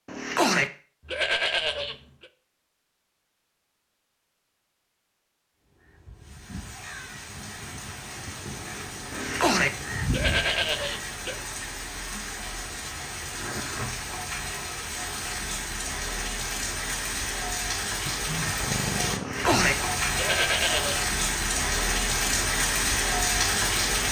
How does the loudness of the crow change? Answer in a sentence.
The loudness of the crow goes up.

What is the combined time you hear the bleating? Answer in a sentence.
The bleating can be heard for 6 seconds in total.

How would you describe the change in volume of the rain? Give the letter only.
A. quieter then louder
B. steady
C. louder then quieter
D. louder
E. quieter
D.